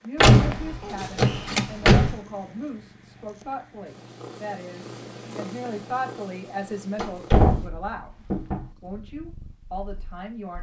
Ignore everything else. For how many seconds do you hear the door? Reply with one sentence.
You can hear the door for 4 seconds altogether.